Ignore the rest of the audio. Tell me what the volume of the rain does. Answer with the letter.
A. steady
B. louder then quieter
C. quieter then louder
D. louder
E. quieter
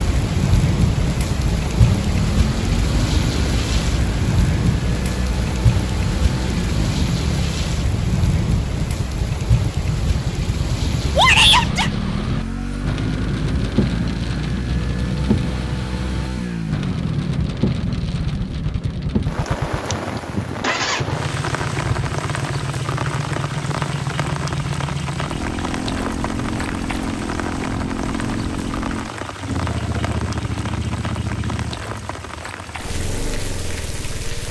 E.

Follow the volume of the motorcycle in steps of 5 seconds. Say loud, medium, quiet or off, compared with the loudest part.
loud, loud, loud, loud, loud, loud, medium.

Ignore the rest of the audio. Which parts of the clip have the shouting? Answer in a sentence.
The shouting can be heard from 11.2 to 11.9 s.